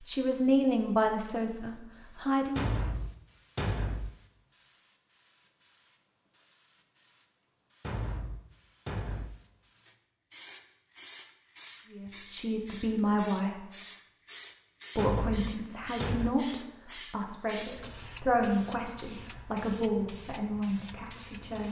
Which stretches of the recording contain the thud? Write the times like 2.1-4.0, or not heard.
2.5-4.2, 7.8-9.4, 14.9-16.3.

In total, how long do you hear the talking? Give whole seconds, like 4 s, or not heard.
11 s.